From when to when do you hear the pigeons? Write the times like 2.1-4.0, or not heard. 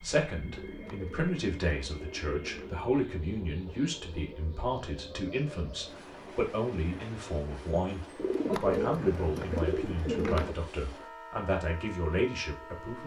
0.5-2.7, 8.2-10.6.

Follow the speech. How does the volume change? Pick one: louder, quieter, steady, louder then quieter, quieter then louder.
steady.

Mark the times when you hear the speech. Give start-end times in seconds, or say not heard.
0.0-13.0.